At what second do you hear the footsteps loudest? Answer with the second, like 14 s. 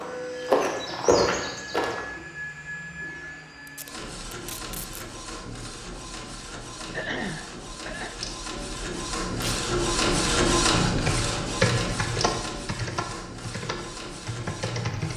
1 s.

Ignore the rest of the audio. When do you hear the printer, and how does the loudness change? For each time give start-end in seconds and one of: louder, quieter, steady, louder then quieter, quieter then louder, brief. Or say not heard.
0.0-15.1 louder then quieter.